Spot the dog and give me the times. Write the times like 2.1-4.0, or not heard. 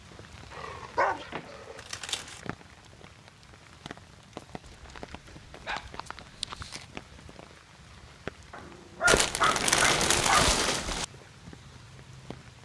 0.5-1.9, 4.7-6.7, 8.5-10.6.